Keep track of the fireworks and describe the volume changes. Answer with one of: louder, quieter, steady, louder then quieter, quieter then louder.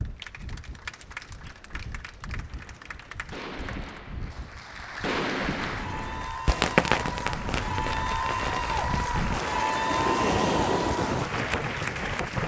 louder then quieter.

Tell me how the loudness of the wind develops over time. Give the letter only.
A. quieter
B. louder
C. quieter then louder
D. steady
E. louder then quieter
B.